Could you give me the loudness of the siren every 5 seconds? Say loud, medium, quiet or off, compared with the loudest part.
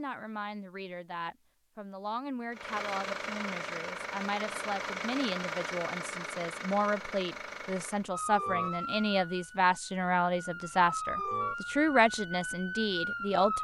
off, loud, loud.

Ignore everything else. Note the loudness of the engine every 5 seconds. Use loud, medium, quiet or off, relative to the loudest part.
loud, loud, off.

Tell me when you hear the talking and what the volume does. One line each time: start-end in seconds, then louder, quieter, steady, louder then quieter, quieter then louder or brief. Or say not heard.
0.0-13.5 louder.